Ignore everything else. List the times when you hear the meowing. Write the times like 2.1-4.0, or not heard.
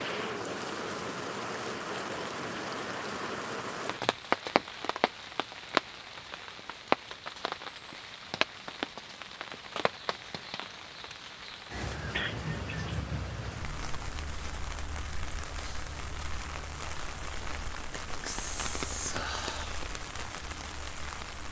12.2-13.1.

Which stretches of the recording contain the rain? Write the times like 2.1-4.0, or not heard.
0.0-21.4.